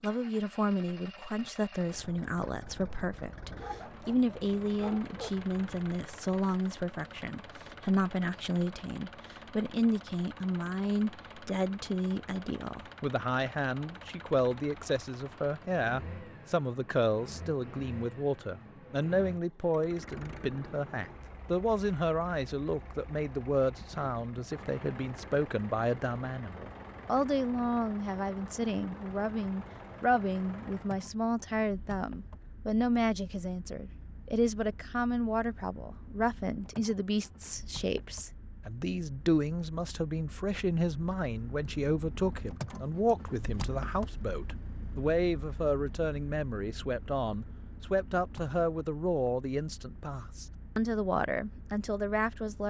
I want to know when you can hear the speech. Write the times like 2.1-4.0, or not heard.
0.0-52.6.